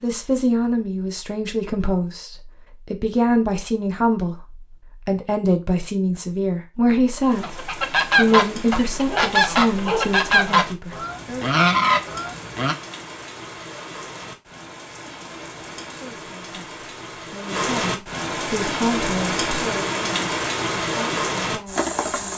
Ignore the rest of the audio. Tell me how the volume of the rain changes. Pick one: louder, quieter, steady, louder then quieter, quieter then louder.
louder.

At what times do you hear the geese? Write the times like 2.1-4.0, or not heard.
7.4-12.8.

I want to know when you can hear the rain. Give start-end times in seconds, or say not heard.
7.1-22.3.